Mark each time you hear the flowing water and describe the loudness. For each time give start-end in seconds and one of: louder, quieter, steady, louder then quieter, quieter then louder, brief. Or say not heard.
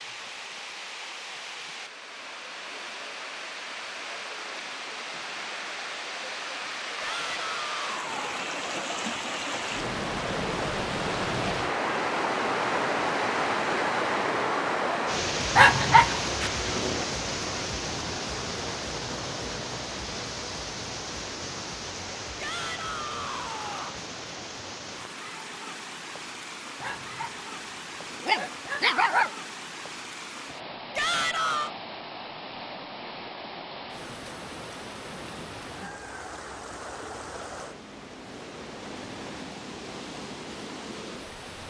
0.0-41.6 louder then quieter.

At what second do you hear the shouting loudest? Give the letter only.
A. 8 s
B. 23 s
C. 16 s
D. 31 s
D.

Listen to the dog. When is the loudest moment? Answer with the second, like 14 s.
16 s.